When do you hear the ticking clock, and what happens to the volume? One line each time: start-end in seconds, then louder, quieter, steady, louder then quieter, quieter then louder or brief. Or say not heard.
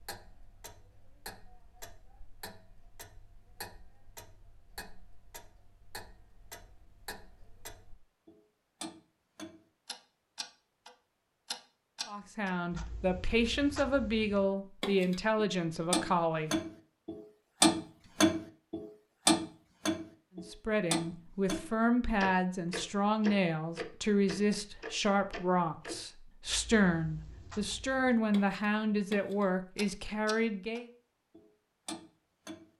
0.0-32.7 louder then quieter.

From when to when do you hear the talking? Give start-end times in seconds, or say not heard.
12.1-16.6, 20.4-30.9.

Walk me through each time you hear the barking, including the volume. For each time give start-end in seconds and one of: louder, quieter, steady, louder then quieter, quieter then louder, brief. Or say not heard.
not heard.